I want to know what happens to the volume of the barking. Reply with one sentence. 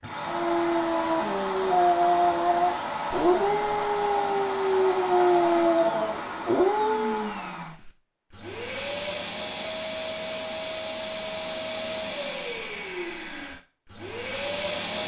The loudness of the barking stays about the same.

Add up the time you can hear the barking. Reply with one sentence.
The barking can be heard for 7 seconds in total.